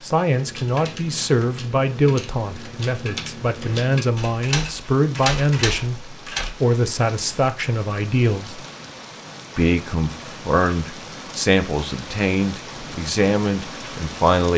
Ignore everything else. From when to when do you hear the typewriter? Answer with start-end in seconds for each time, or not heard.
0.3-6.5.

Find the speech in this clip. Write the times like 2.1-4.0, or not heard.
0.0-8.6, 9.6-14.5.